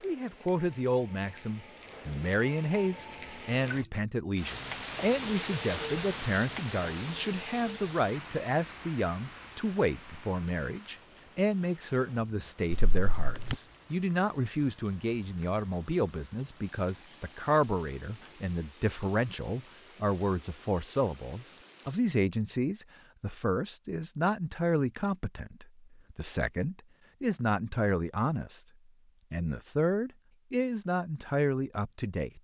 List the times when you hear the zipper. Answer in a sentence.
You can hear the zipper from 12.7 to 13.6 s.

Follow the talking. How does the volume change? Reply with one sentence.
The loudness of the talking stays about the same.